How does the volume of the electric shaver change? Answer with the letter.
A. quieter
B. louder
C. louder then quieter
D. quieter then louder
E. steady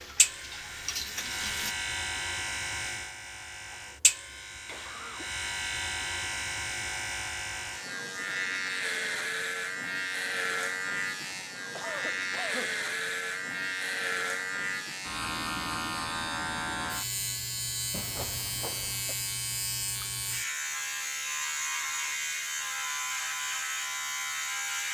E.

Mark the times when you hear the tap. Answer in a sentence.
The tap can be heard from 0.0 to 1.8 s.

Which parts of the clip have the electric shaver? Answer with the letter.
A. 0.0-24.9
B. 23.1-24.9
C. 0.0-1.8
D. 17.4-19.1
A.